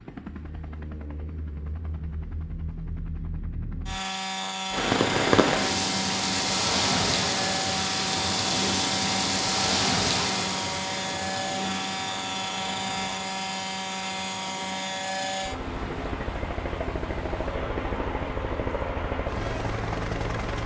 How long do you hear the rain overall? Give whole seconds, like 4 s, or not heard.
16 s.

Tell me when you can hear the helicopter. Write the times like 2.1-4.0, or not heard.
0.0-20.6.